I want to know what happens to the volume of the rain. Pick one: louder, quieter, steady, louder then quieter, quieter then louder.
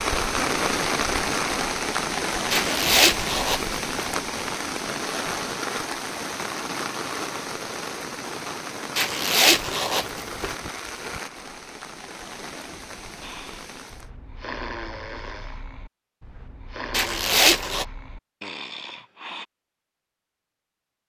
quieter.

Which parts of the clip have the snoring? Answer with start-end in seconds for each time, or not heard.
13.2-19.4.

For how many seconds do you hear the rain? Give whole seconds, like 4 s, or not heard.
14 s.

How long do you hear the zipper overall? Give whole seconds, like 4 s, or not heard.
4 s.